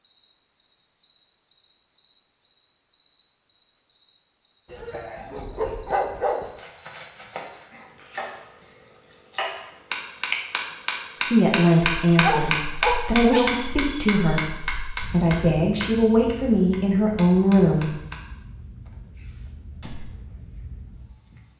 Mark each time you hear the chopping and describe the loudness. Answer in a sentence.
The chopping can be heard from 6.4 to 18.1 s, getting louder then quieter.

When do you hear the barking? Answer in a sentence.
You can hear the barking from 4.7 to 6.5 s and from 11.6 to 13.6 s.